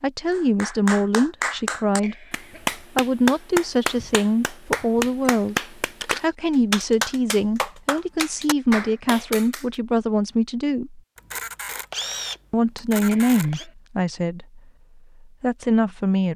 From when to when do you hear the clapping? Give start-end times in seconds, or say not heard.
0.3-9.7.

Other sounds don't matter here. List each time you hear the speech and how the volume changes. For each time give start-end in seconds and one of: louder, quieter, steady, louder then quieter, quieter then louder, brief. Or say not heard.
0.0-2.2 brief
3.0-11.0 steady
12.5-14.6 brief
15.2-16.3 brief.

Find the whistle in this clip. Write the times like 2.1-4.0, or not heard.
not heard.